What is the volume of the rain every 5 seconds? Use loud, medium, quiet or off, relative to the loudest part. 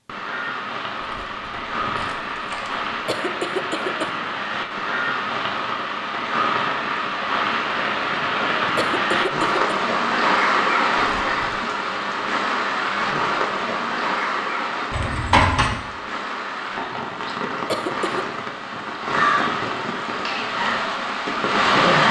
medium, loud, loud, medium, loud.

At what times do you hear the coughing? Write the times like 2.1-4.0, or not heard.
3.0-4.1, 8.8-9.6, 17.6-18.2.